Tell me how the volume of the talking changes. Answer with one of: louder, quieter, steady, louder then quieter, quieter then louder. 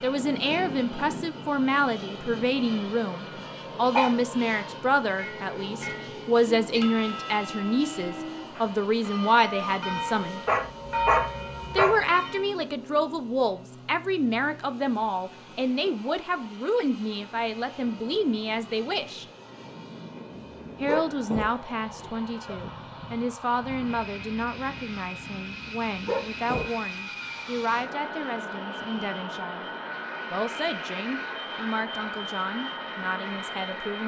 quieter.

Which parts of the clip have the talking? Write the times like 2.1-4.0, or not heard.
0.0-10.4, 11.7-19.2, 20.8-29.6, 30.3-34.0.